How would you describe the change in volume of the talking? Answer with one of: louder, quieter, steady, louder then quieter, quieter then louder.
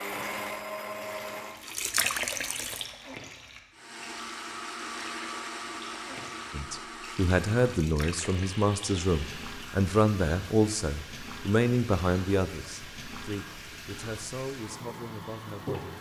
quieter.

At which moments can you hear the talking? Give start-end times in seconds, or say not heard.
6.5-15.8.